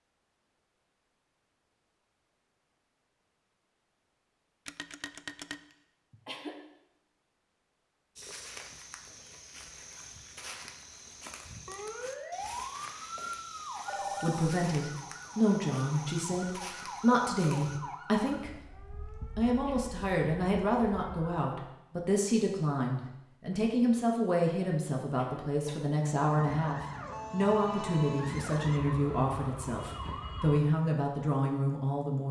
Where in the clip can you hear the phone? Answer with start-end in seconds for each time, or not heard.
4.7-5.6, 13.8-14.4, 27.5-28.2.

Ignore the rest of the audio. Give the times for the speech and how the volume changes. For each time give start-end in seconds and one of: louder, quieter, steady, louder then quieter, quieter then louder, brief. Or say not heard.
14.2-32.2 steady.